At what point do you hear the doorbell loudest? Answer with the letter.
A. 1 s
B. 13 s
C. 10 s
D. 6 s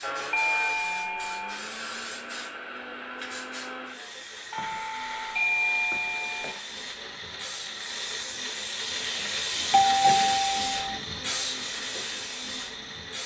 C.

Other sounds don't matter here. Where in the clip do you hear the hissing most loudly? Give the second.
10 s.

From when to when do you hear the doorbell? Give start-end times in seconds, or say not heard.
0.3-1.6, 4.5-6.5, 9.2-11.0.